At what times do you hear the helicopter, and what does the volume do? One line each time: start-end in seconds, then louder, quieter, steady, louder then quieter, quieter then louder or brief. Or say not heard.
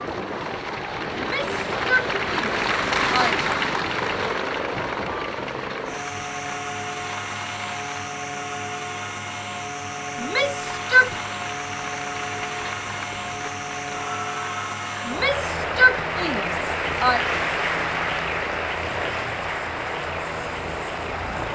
0.0-21.5 steady.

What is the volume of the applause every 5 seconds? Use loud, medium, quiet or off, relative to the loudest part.
loud, medium, medium, loud, medium.